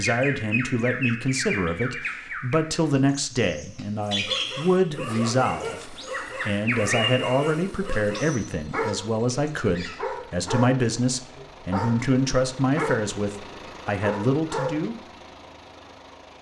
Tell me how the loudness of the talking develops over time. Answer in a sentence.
The volume of the talking stays about the same.